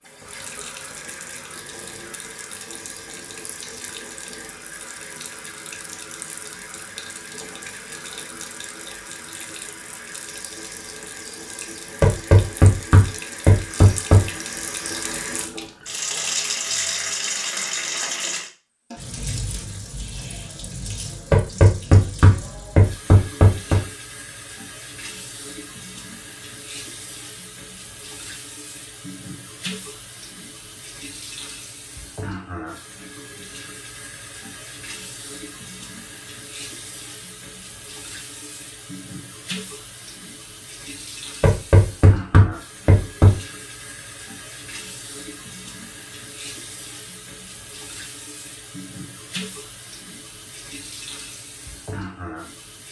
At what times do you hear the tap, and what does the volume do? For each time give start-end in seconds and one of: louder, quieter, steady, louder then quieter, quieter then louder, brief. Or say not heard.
0.0-52.8 louder then quieter.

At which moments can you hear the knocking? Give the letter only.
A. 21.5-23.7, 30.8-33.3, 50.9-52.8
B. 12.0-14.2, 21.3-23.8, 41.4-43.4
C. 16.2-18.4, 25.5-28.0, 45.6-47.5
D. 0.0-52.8
B.